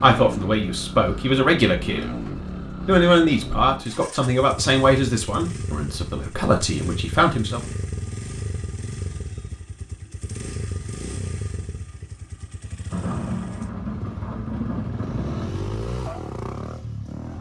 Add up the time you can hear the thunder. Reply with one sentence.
You can hear the thunder for 3 seconds altogether.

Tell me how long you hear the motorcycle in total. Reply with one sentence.
The motorcycle can be heard for 17 seconds in total.